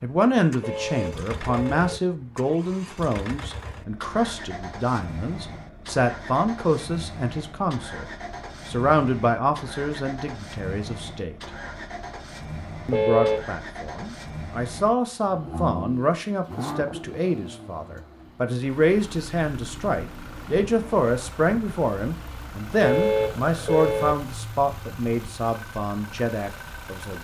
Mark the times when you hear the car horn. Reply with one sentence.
You can hear the car horn from 0.6 to 1.9 s, from 12.9 to 13.4 s and from 22.8 to 24.1 s.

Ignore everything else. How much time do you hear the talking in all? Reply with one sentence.
You can hear the talking for 25 seconds altogether.